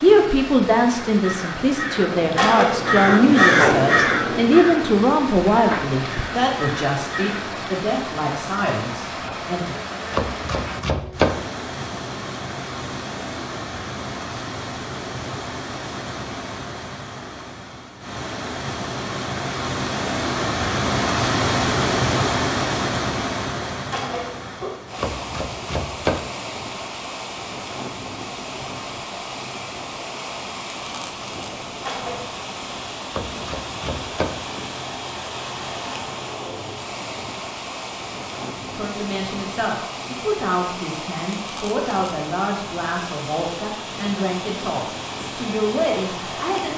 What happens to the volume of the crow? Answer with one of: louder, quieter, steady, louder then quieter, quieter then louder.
louder then quieter.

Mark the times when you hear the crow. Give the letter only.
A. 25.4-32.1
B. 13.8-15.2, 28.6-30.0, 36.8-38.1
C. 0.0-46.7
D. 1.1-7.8
D.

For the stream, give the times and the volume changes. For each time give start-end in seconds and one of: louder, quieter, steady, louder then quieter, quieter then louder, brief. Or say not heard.
0.0-46.7 louder then quieter.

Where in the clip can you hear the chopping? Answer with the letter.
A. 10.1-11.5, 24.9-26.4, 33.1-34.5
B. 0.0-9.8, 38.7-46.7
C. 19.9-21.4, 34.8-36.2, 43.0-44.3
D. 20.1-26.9
A.